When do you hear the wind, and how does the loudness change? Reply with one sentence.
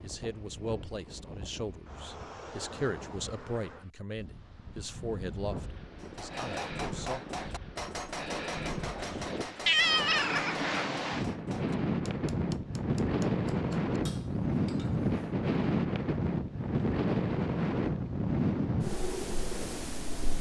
You can hear the wind from 0.0 to 20.3 s, getting louder.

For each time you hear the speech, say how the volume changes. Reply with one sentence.
The speech can be heard from 0.0 to 7.2 s, getting quieter.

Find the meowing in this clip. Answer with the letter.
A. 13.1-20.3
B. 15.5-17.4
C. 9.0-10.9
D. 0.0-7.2
C.